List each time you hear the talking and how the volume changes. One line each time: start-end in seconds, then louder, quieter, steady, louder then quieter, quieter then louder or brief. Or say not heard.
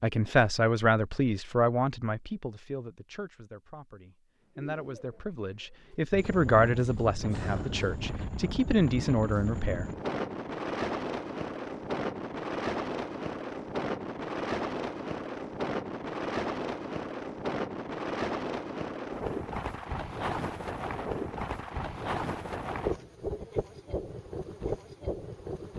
0.0-9.8 quieter then louder.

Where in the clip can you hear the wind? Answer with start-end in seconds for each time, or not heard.
6.1-25.7.